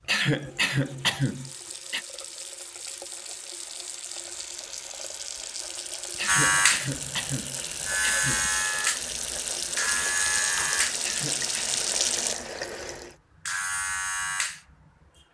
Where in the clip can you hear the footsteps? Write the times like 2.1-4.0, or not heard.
not heard.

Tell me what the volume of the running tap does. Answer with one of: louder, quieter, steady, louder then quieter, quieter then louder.
louder.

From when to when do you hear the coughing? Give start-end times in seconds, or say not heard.
0.1-2.0, 6.2-8.5, 11.0-11.8.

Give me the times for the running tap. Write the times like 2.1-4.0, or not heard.
0.0-13.2.